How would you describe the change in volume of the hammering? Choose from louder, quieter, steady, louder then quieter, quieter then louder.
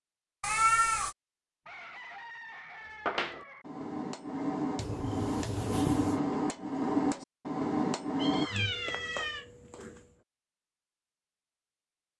louder.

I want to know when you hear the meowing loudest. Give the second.
1 s.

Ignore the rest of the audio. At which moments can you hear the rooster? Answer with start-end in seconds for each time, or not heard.
1.6-3.6.